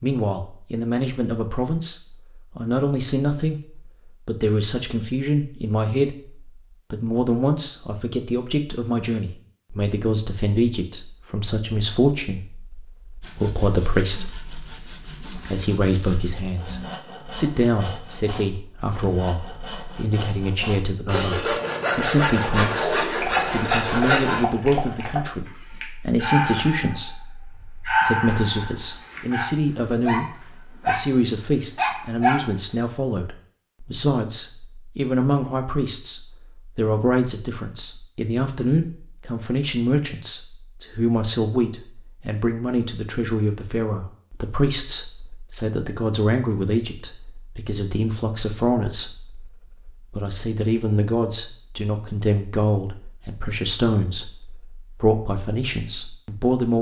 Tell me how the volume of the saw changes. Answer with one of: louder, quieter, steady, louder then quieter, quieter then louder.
louder.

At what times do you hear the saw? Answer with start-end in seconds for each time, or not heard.
13.2-24.4.